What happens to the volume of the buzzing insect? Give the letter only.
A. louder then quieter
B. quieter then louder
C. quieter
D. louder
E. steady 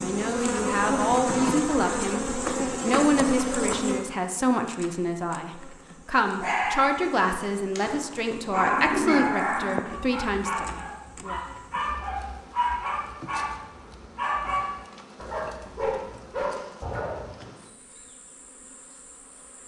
C.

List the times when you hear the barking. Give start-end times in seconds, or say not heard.
6.4-17.4.